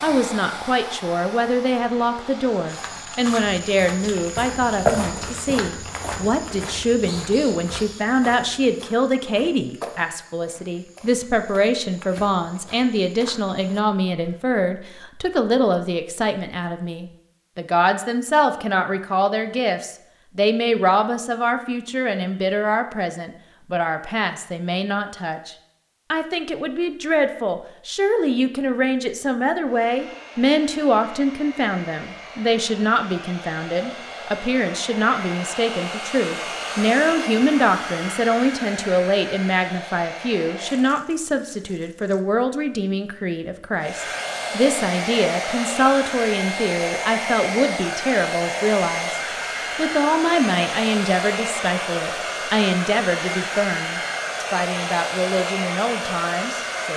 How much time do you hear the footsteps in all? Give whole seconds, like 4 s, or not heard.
12 s.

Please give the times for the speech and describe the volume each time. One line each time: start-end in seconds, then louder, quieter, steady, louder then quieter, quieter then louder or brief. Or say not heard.
0.0-56.9 steady.